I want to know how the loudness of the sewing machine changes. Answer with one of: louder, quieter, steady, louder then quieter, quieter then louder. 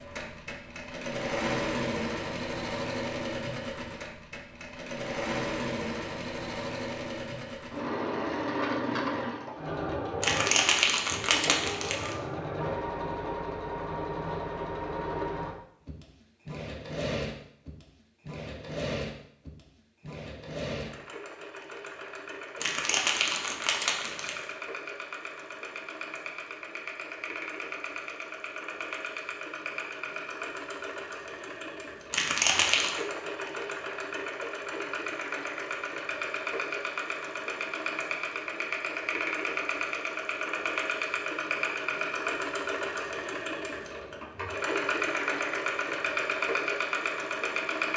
quieter then louder.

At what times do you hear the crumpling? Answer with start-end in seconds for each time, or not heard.
10.2-12.2, 22.6-24.4, 32.1-33.0.